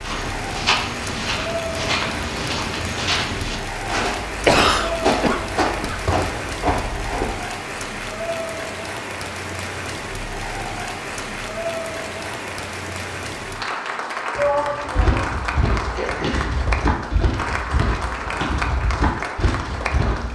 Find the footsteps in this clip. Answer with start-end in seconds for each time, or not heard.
0.0-7.3, 14.9-20.3.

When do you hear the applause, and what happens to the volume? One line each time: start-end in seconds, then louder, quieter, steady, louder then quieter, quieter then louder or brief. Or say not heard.
0.0-20.3 steady.